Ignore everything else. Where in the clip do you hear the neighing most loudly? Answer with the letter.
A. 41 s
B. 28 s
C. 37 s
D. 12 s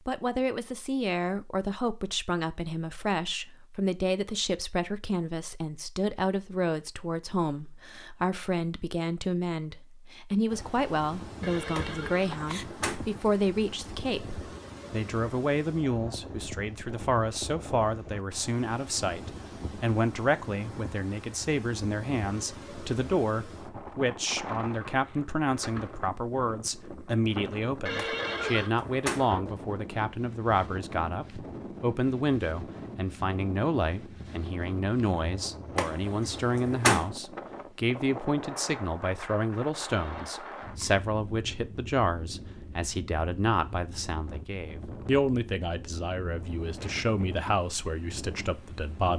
B.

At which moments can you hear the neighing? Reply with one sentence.
You can hear the neighing from 11.4 to 12.7 s, from 27.9 to 28.8 s and from 39.9 to 41.0 s.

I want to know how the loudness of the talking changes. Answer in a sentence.
The loudness of the talking stays about the same.